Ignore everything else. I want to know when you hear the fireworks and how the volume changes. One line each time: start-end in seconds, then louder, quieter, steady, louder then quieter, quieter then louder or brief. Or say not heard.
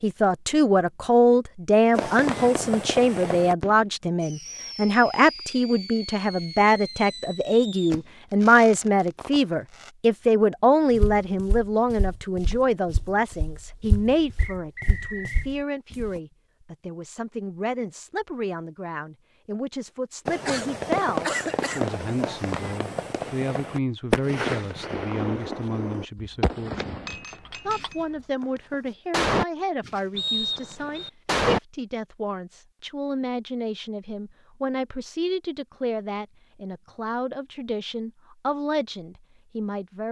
1.9-9.9 quieter
20.2-31.6 quieter then louder.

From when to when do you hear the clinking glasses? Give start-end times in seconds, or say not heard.
27.1-28.2.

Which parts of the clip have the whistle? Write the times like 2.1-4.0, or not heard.
14.3-15.5, 30.1-31.1.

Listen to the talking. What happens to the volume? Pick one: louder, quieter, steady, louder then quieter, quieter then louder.
quieter.